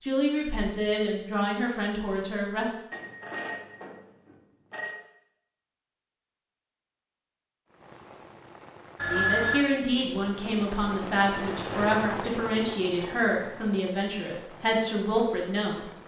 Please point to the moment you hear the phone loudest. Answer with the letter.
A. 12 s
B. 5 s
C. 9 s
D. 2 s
C.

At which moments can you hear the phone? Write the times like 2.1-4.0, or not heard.
2.9-5.0, 8.9-9.7.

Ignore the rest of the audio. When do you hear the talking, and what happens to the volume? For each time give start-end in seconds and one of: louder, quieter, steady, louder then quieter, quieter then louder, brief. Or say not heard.
0.0-2.6 brief
9.1-15.8 steady.